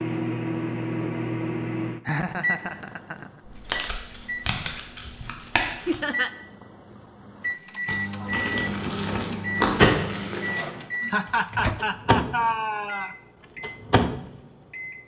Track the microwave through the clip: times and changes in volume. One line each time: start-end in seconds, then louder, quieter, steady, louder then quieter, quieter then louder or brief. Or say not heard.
0.0-15.0 quieter then louder.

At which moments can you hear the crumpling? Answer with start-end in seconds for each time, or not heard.
3.5-6.0, 7.8-10.6.